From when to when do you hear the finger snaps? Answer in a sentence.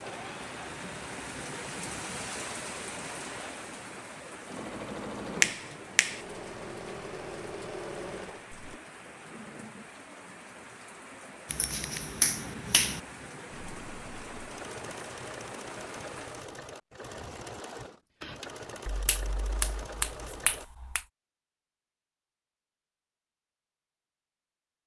The finger snaps can be heard from 5.4 to 6.2 s, from 11.5 to 13.0 s and from 18.9 to 21.1 s.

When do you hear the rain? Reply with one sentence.
The rain can be heard from 0.0 to 16.5 s.